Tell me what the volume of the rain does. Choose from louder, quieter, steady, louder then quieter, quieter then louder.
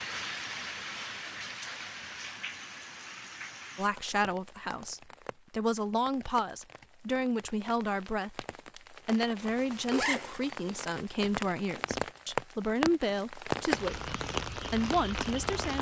quieter then louder.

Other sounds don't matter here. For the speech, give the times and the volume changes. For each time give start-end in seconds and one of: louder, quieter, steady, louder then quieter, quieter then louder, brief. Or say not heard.
3.8-15.7 steady.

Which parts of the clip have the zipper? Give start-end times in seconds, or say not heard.
9.3-10.8.